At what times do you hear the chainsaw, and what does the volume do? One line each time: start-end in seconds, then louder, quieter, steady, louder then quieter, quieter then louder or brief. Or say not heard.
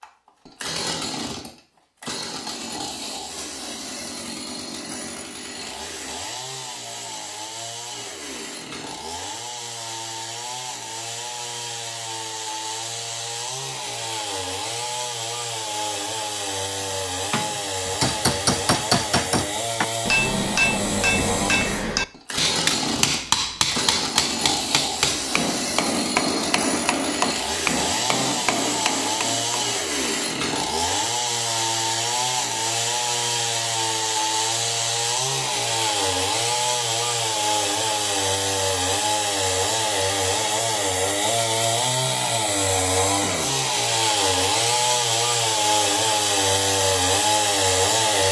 0.0-48.2 louder.